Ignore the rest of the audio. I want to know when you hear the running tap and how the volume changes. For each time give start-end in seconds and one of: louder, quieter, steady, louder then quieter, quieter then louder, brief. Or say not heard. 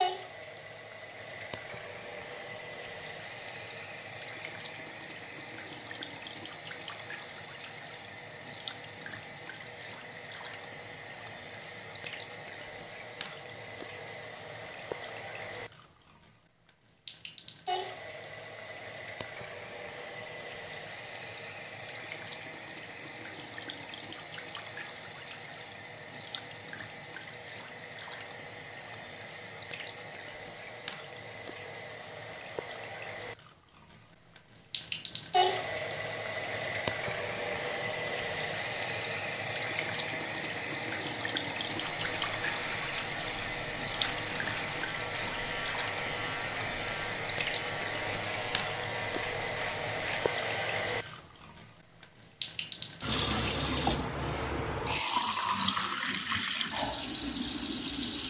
0.0-58.2 louder.